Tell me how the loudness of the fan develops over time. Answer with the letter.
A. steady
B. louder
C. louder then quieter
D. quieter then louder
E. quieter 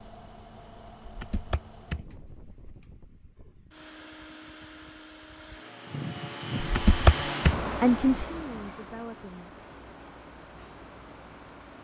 C.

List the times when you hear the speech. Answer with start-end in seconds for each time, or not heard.
7.8-9.5.